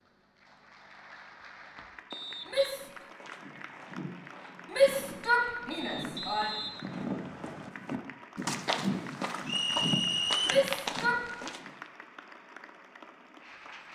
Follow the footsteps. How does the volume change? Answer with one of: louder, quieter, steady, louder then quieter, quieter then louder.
louder.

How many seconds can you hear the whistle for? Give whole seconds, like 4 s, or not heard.
4 s.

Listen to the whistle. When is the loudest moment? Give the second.
10 s.